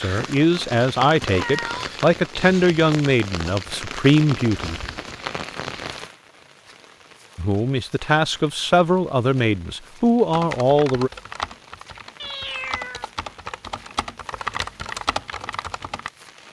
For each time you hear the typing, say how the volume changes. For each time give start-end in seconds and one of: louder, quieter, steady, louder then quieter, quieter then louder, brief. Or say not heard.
10.3-16.1 quieter then louder.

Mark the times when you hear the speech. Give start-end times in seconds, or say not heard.
0.0-4.8, 7.3-11.1.